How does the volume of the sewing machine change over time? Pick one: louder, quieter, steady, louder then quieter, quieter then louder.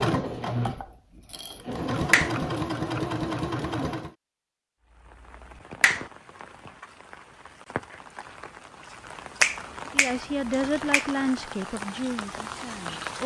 quieter then louder.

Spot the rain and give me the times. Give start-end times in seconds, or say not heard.
4.8-13.2.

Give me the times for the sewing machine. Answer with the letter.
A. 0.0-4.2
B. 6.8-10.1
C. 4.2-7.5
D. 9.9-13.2
A.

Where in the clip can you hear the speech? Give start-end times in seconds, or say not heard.
9.9-13.2.